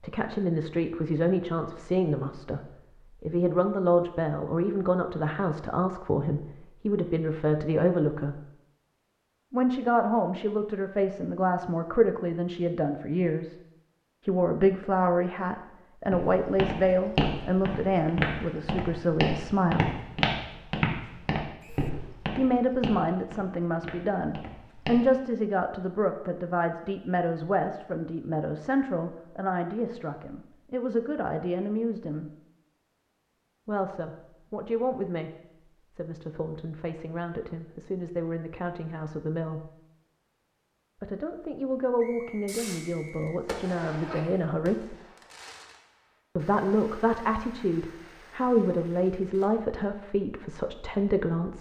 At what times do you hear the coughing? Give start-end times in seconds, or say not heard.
not heard.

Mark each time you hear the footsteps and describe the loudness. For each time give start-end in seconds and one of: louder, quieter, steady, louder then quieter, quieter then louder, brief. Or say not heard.
16.1-25.1 quieter.